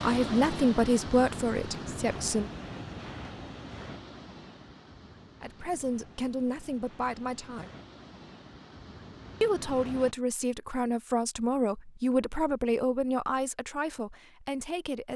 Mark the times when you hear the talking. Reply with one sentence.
The talking can be heard from 0.0 to 2.5 s, from 5.4 to 7.7 s and from 9.4 to 15.1 s.